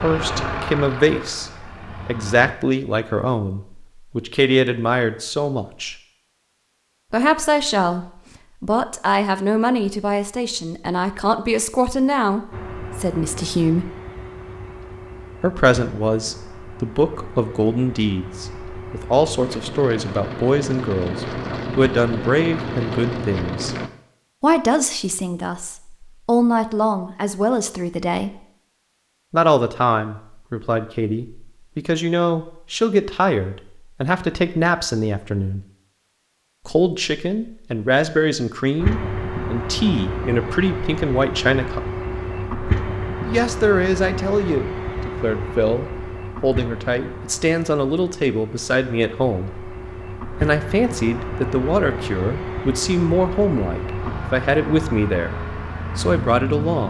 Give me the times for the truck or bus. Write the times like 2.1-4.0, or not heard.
0.0-2.5, 12.5-23.9, 38.8-56.8.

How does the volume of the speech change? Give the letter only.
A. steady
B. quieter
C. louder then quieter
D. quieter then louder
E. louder
A.